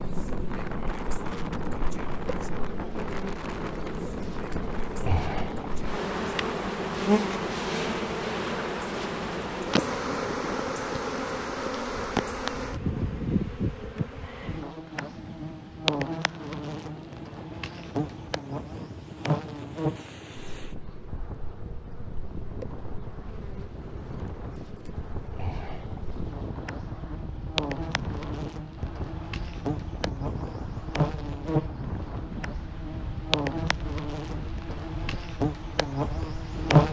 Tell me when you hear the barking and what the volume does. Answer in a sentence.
You can't hear the barking here.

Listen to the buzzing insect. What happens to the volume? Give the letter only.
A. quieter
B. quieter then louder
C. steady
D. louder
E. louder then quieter
B.